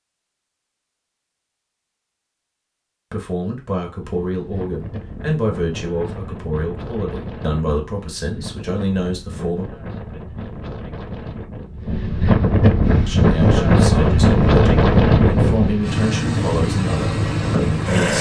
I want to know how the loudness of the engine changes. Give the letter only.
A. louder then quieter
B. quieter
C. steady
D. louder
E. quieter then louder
D.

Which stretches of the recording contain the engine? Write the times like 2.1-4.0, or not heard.
12.8-18.1.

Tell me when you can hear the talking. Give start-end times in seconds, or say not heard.
3.1-9.7, 13.0-18.1.